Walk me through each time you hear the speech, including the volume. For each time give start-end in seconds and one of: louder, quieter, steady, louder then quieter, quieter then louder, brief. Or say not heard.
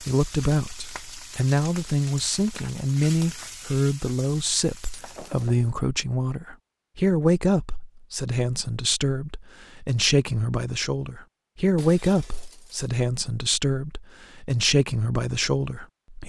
0.0-16.2 steady.